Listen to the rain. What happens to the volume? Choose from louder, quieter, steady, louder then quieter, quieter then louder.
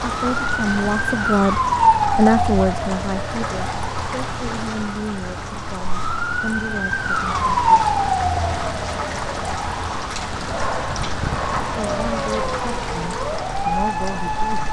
steady.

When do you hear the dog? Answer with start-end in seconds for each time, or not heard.
10.3-12.3.